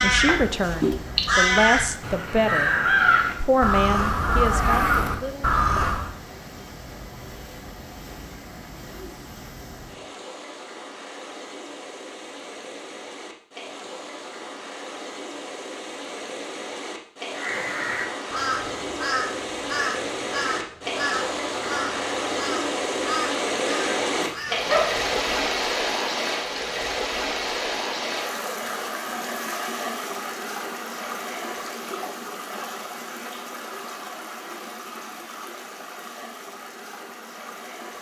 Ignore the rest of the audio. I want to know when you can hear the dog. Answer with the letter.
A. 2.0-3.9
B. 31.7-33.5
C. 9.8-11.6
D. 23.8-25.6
D.